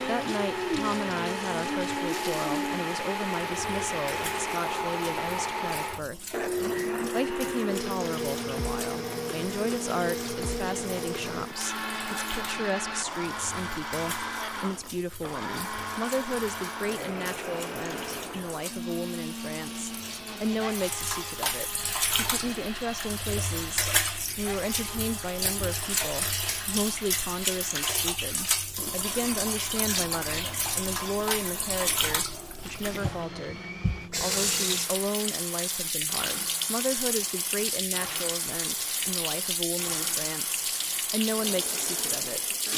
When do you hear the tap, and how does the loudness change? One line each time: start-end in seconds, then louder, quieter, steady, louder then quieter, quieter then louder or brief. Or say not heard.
0.0-42.7 louder.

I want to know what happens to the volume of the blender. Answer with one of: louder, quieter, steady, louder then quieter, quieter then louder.
quieter.